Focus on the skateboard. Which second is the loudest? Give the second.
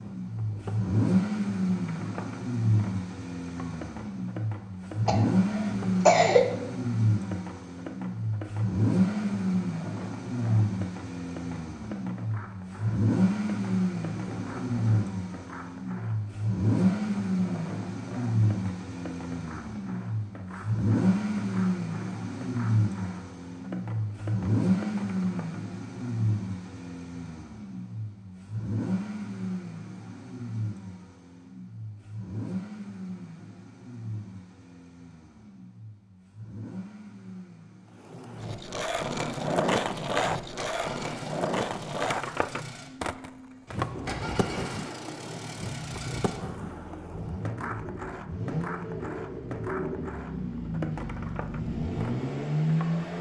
40 s.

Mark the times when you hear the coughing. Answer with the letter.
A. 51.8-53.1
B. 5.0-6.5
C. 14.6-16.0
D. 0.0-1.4
B.